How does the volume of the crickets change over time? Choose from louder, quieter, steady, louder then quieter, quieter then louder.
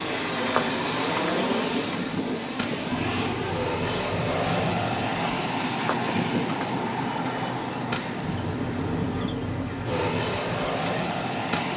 steady.